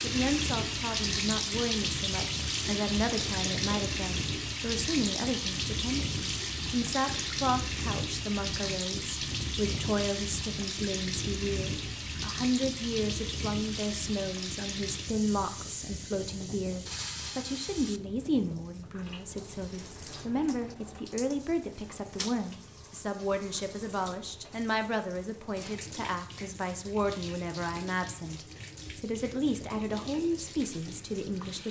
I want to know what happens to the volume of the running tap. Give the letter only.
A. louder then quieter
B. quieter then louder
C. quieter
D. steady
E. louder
C.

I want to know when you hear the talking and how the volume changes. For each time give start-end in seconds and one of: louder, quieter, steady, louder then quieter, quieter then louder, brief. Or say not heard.
0.0-31.6 steady.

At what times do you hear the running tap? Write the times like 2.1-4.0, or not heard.
0.0-31.6.